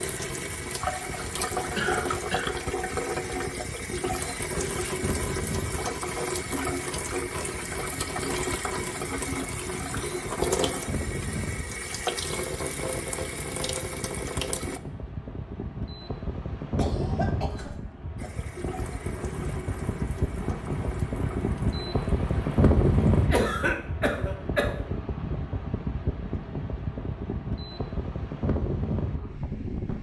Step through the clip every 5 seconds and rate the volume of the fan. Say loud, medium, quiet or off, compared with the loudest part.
quiet, medium, medium, medium, loud, medium.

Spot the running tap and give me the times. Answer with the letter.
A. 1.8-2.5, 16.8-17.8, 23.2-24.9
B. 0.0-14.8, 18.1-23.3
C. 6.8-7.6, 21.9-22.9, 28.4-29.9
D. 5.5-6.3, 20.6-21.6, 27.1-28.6
B.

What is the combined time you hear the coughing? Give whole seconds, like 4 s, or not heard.
3 s.